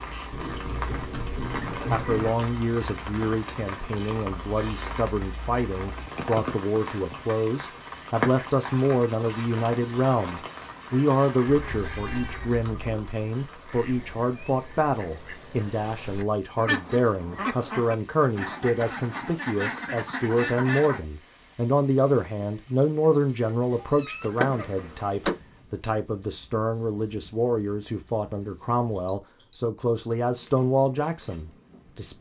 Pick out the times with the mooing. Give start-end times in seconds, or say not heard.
not heard.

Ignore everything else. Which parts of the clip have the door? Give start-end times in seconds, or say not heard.
24.2-25.4.